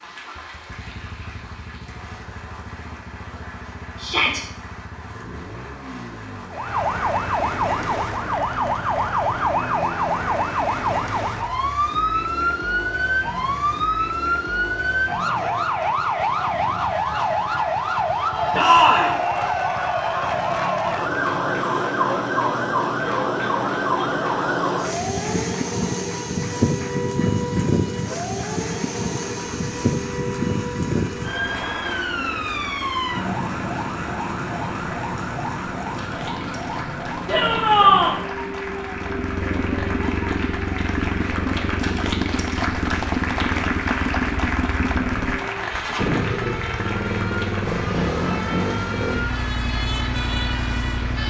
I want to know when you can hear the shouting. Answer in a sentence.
The shouting can be heard from 4.0 to 4.4 s, from 18.6 to 19.1 s and from 37.2 to 38.2 s.